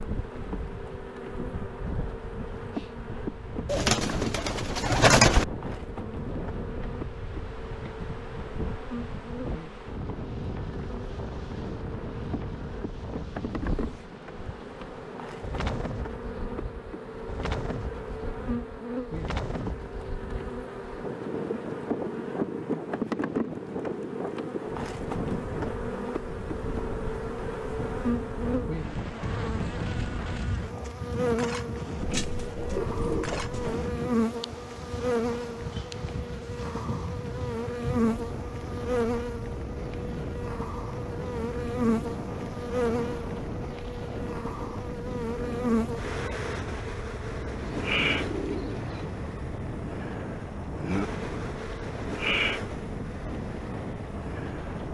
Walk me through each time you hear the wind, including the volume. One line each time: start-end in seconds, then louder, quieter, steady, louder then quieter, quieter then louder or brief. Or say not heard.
0.0-54.8 steady.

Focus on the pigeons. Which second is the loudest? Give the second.
5 s.